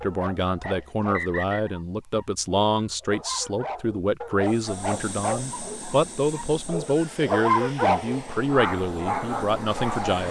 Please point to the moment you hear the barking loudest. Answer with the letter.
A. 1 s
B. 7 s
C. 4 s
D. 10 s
B.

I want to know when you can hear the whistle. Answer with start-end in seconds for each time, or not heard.
0.6-1.7.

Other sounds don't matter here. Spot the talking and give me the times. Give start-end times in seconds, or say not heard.
0.0-10.2.